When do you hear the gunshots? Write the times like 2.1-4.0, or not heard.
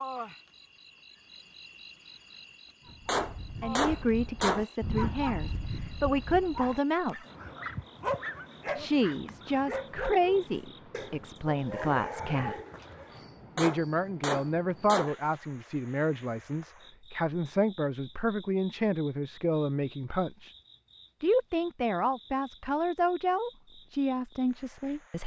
3.0-4.7, 13.6-15.2.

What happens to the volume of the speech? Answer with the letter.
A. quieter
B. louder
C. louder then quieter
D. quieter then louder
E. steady
E.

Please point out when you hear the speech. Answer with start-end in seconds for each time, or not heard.
3.6-7.2, 8.8-12.6, 13.6-20.5, 21.2-25.2.